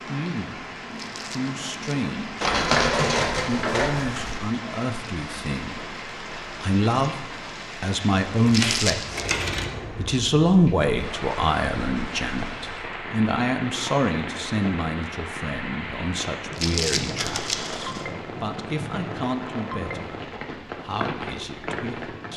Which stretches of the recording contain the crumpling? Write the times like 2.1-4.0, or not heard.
0.9-1.9, 8.4-9.3, 16.5-17.6.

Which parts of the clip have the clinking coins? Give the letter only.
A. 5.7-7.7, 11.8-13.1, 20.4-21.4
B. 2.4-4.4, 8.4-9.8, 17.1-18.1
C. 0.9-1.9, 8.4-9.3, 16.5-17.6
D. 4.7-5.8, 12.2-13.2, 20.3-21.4
B.